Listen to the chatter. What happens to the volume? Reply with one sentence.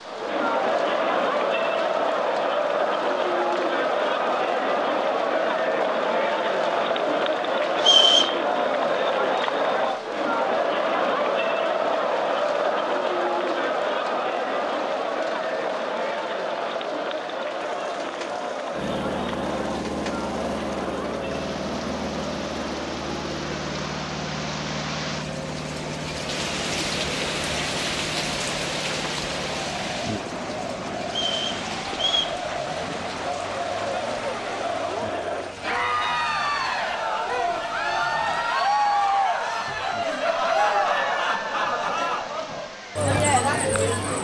The loudness of the chatter goes down, then up.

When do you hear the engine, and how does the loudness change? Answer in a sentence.
You can hear the engine from 18.7 to 38.5 s, getting quieter.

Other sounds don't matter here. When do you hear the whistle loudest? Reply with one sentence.
The volume of the whistle peaks at 8 seconds.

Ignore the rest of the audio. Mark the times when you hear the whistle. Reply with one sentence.
You can hear the whistle from 7.8 to 8.3 s and from 31.1 to 32.4 s.